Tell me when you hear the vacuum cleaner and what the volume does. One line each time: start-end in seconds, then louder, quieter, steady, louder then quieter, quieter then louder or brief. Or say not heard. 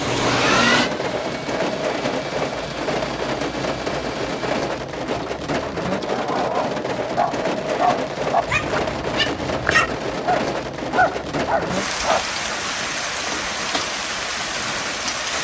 0.0-4.6 quieter.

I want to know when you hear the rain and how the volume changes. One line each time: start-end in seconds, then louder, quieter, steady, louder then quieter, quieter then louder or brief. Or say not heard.
0.0-15.3 steady.